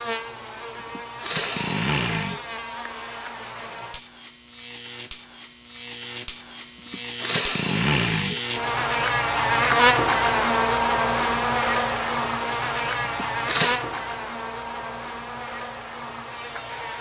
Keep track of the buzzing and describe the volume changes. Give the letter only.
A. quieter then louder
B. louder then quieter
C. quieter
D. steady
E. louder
B.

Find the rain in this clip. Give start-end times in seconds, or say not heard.
not heard.